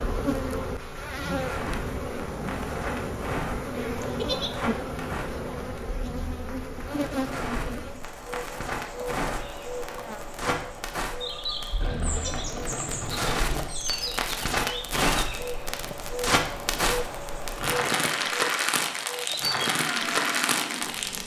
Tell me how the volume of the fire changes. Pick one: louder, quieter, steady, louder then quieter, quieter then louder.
louder.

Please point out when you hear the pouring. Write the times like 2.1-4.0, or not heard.
6.9-7.8, 11.8-13.8.